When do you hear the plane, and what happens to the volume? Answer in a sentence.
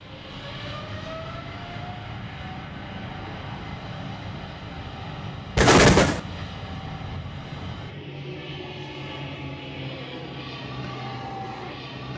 The plane can be heard from 0.0 to 12.1 s, at a steady volume.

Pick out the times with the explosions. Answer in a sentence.
The explosions can be heard from 5.5 to 6.2 s.